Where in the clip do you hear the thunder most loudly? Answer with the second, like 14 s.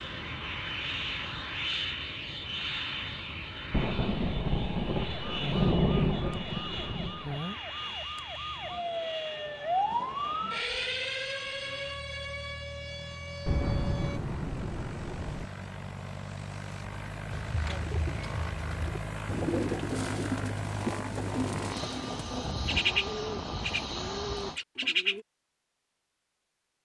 6 s.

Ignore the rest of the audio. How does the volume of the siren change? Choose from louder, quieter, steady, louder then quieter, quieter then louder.
louder then quieter.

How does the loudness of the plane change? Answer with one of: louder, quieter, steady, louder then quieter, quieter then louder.
quieter then louder.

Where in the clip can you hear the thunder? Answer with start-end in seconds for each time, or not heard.
3.7-7.4, 13.4-15.4.